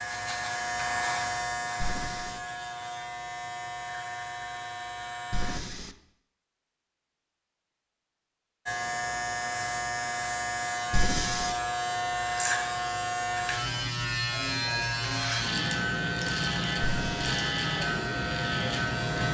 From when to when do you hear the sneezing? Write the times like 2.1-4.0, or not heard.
not heard.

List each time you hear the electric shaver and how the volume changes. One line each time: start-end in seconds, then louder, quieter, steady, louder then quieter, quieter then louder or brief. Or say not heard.
0.0-5.6 quieter
8.7-19.2 steady.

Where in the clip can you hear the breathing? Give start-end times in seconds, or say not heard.
1.8-2.4, 5.3-6.0, 10.9-11.6, 16.8-17.2.